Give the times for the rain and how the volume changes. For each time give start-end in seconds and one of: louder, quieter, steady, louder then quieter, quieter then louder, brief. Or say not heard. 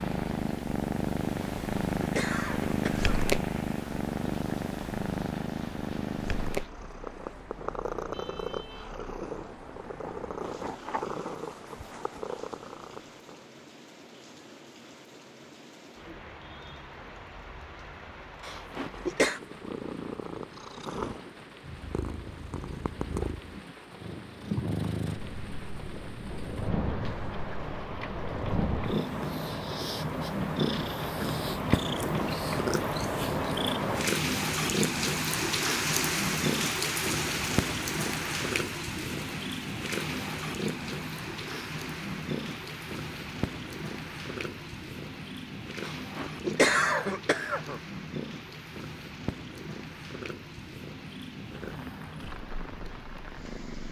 0.0-53.8 louder then quieter.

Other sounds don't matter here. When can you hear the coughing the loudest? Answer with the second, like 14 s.
47 s.